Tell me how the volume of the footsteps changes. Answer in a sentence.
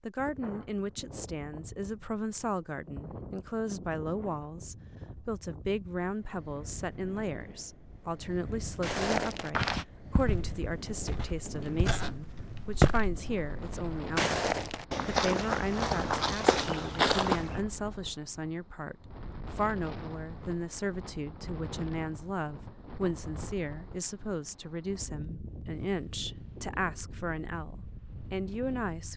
The loudness of the footsteps goes down, then up.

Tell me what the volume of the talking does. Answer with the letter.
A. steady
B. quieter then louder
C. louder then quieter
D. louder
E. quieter
A.